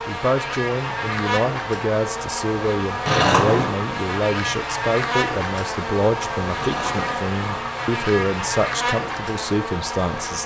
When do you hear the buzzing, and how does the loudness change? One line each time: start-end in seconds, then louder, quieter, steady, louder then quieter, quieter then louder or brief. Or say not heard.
0.0-10.4 steady.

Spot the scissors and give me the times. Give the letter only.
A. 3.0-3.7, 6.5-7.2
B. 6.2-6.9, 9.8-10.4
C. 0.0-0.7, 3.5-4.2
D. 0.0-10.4
A.